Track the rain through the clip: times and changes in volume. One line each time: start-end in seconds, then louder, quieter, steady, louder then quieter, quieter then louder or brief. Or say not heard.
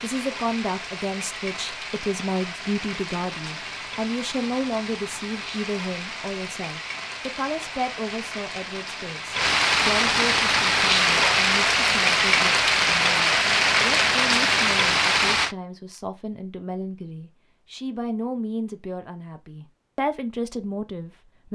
0.0-15.6 louder.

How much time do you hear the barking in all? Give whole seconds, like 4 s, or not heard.
not heard.